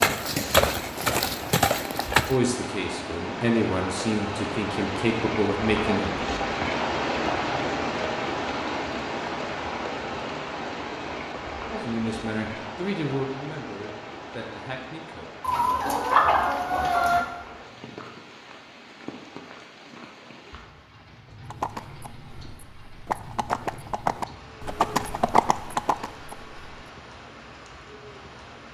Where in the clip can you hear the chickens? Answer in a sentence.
You can hear the chickens from 15.4 to 17.2 s.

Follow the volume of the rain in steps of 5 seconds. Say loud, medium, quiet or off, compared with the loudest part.
medium, loud, medium, quiet, quiet, quiet.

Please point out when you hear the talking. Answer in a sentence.
The talking can be heard from 2.2 to 6.2 s and from 11.8 to 15.2 s.